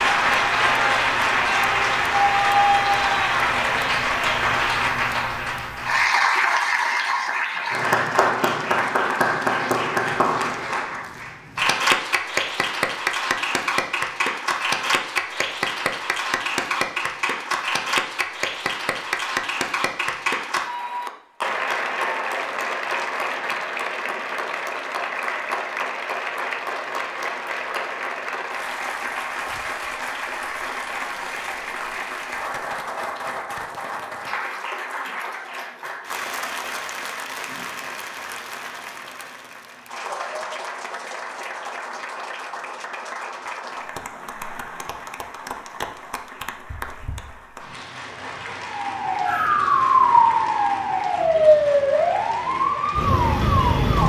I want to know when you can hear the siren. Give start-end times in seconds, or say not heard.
48.7-54.0.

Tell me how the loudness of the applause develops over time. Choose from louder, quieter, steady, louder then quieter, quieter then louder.
quieter.